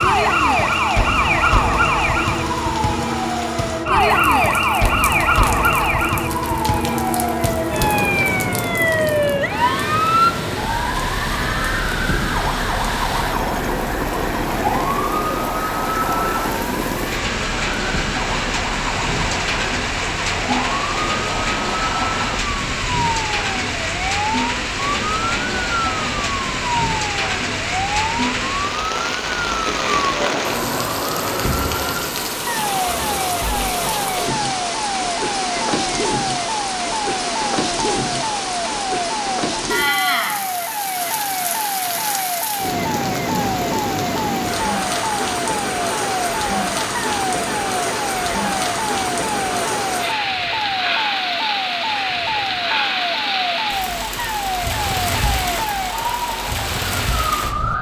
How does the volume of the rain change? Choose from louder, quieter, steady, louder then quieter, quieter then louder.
louder.